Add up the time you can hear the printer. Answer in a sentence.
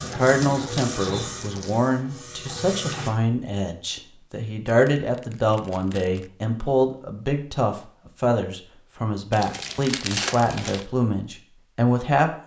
The printer can be heard for 3 seconds in total.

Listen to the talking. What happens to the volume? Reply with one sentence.
The volume of the talking stays about the same.